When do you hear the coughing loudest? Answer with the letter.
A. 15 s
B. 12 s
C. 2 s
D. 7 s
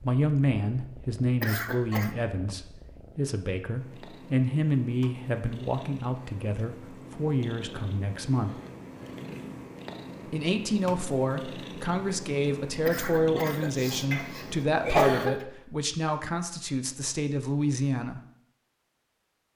A.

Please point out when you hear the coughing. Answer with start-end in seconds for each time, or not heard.
1.4-2.1, 12.8-15.4.